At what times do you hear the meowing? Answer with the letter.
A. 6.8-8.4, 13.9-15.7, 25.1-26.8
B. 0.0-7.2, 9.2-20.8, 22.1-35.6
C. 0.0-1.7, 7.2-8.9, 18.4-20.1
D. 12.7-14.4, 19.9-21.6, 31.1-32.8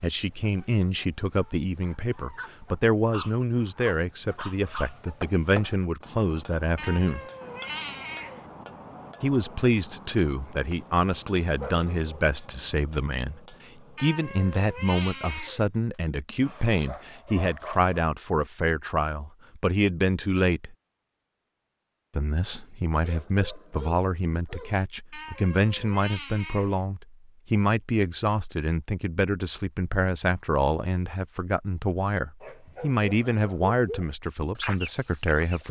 A.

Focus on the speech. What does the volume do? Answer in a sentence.
The loudness of the speech stays about the same.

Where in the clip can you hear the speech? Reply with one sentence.
You can hear the speech from 0.0 to 7.2 s, from 9.2 to 20.8 s and from 22.1 to 35.6 s.